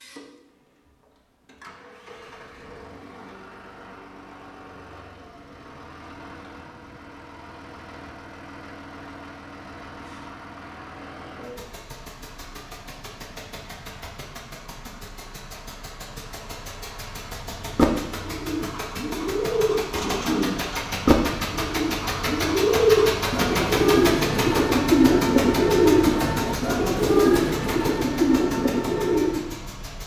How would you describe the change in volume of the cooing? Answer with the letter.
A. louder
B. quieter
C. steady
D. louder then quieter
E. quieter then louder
A.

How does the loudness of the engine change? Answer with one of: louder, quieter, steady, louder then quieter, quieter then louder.
louder.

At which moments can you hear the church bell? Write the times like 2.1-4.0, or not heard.
not heard.